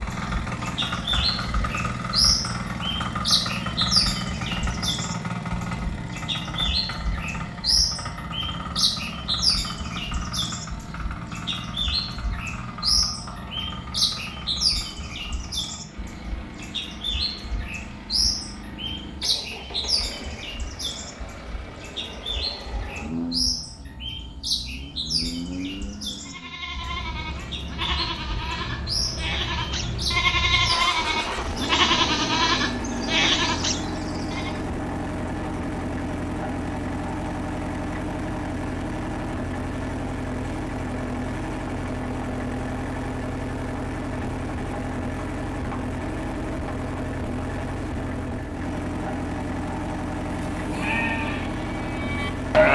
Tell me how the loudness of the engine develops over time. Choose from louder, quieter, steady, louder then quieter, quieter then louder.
quieter then louder.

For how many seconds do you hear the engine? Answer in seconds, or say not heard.
53 s.